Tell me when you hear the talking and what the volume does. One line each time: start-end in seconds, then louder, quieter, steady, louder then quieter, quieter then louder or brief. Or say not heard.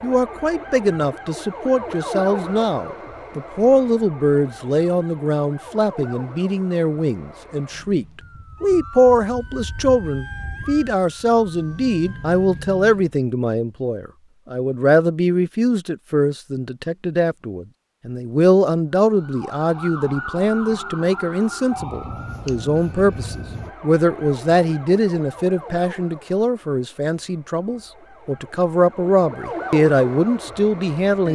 0.0-31.3 steady.